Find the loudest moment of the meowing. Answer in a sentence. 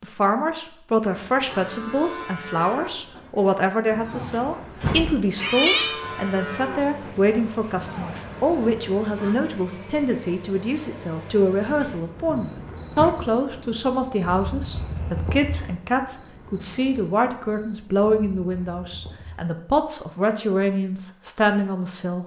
The volume of the meowing peaks at 6 seconds.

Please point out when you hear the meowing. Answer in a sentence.
You can hear the meowing from 4.1 to 6.0 s and from 12.2 to 13.2 s.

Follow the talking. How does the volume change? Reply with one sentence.
The volume of the talking stays about the same.